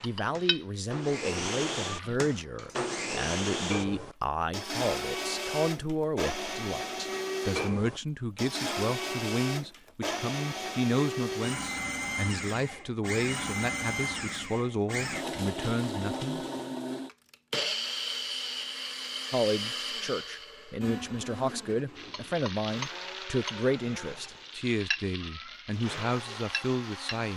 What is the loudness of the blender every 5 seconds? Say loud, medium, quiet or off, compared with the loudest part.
loud, loud, loud, loud, medium, medium.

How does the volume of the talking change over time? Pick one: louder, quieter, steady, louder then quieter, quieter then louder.
steady.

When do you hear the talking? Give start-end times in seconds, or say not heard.
0.0-16.4, 19.3-27.3.